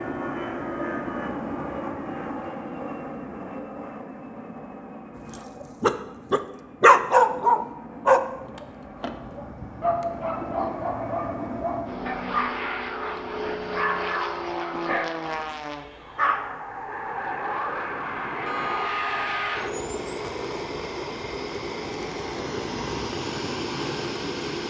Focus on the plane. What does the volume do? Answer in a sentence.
The volume of the plane goes down, then up.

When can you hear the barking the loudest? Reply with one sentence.
The loudest moment of the barking is at 7 seconds.